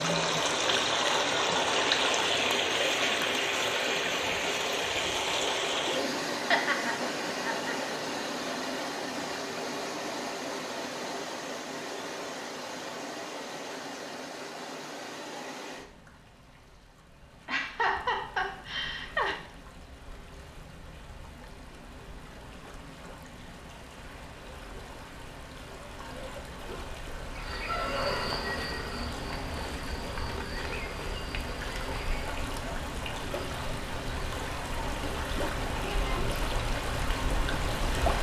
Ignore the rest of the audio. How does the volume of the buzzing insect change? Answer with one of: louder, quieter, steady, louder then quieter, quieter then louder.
quieter.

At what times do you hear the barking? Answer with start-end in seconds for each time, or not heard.
not heard.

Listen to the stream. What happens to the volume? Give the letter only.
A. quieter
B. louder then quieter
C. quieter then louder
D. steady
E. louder
C.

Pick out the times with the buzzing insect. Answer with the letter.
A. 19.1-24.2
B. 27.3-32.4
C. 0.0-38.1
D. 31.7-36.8
B.